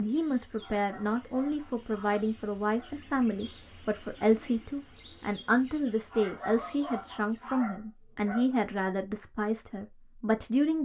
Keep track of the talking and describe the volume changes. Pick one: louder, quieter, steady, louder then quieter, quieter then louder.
steady.